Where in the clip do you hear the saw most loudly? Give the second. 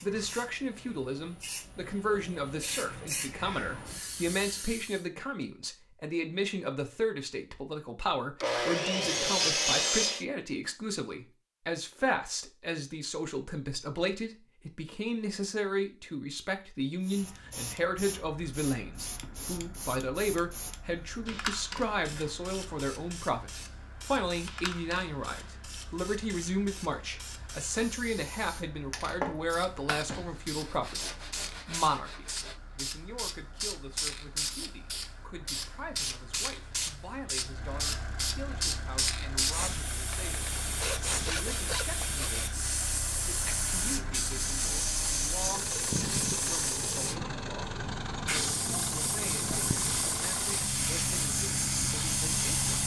10 s.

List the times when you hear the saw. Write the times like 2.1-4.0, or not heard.
8.4-10.2, 29.9-32.5, 40.1-42.5.